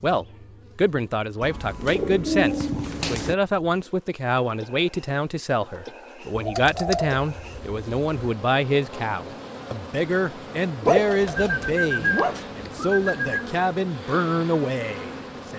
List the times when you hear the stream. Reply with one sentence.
The stream can't be heard in this clip.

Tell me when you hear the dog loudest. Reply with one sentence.
The loudest moment of the dog is at 11 seconds.